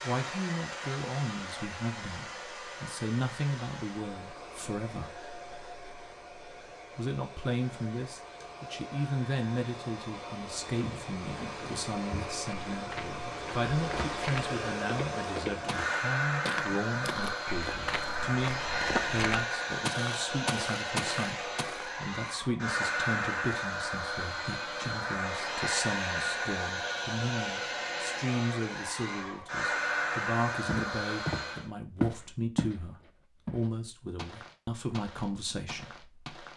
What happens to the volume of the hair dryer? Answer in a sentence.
The loudness of the hair dryer goes up.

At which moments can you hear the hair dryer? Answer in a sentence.
You can hear the hair dryer from 0.0 to 31.7 s.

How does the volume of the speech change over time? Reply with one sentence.
The volume of the speech stays about the same.